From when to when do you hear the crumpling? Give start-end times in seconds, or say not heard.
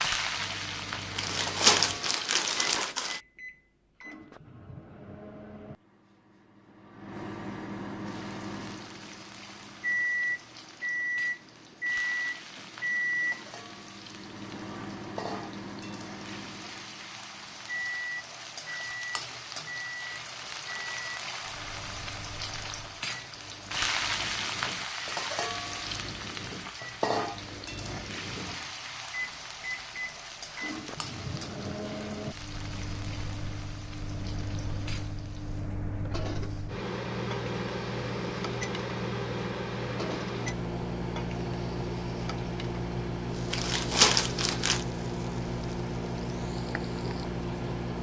1.1-3.2, 43.5-44.9.